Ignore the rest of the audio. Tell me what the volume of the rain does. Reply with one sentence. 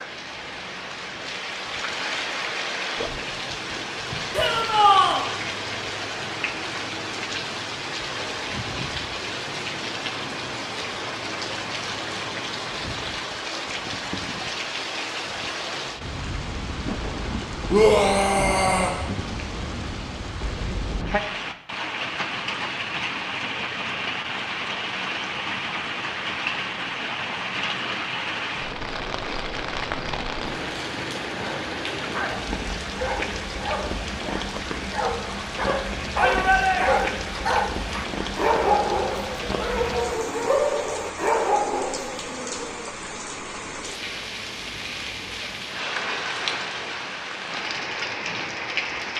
The loudness of the rain stays about the same.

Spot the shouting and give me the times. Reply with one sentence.
The shouting can be heard from 4.3 to 5.2 s, from 17.7 to 18.9 s and from 36.1 to 37.1 s.